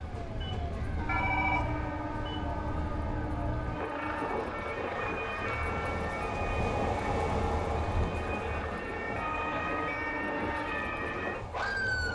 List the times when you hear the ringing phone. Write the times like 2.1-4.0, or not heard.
1.1-1.9.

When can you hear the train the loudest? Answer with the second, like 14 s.
7 s.